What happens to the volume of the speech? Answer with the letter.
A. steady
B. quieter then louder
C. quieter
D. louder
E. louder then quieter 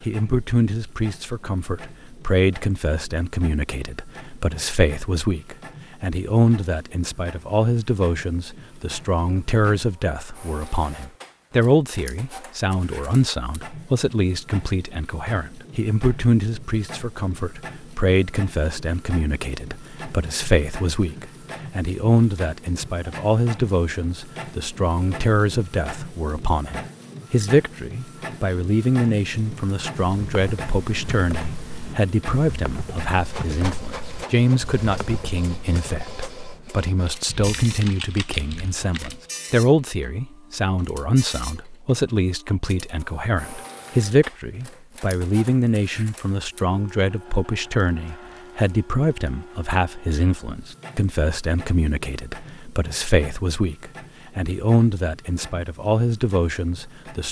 A.